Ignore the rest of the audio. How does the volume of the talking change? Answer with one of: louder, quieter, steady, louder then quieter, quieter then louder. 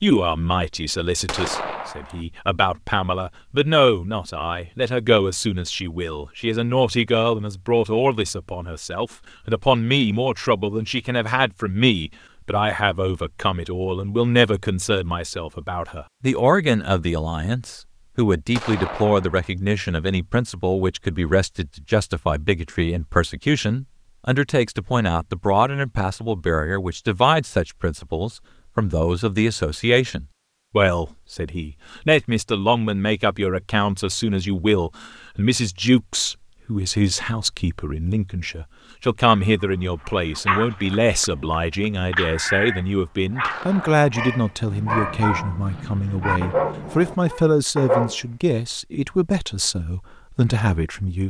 steady.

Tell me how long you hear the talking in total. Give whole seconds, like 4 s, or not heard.
51 s.